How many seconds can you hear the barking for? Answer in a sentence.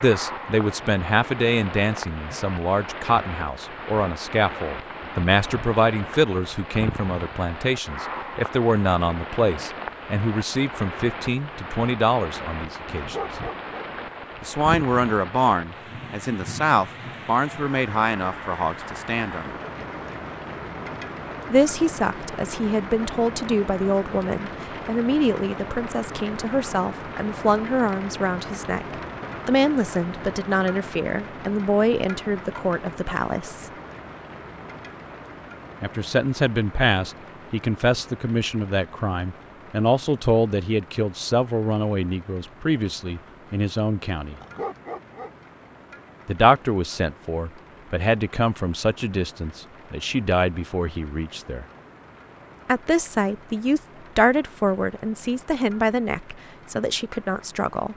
You can hear the barking for 2 seconds altogether.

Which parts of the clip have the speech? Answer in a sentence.
You can hear the speech from 0.0 to 13.2 s, from 14.4 to 19.6 s, from 21.5 to 33.6 s, from 35.8 to 44.4 s, from 46.2 to 51.6 s and from 52.6 to 57.9 s.